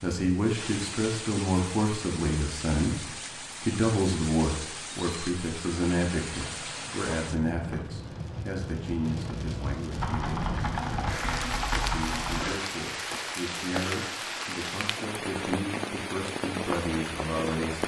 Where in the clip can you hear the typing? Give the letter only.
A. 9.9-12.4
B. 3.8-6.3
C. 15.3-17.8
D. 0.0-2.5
A.